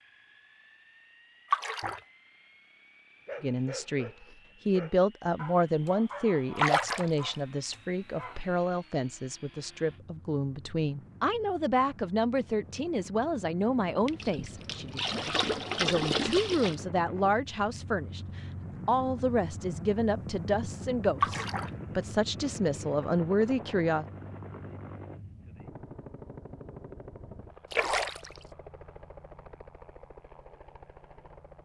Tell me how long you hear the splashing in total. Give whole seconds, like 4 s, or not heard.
5 s.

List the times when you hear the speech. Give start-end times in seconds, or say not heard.
3.4-24.1.